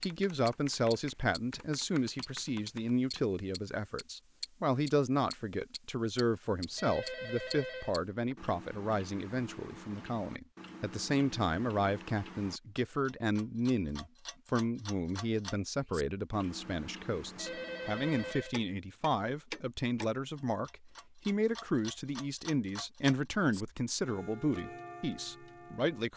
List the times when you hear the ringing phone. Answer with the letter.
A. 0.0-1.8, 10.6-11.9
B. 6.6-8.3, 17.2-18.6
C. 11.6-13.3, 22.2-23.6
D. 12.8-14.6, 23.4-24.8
B.